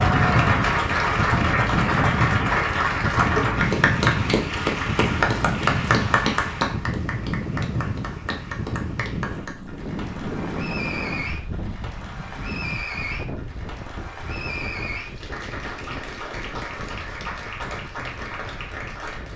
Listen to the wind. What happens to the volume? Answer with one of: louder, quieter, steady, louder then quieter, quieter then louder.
quieter.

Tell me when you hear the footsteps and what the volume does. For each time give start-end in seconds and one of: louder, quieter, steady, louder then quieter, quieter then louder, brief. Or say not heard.
not heard.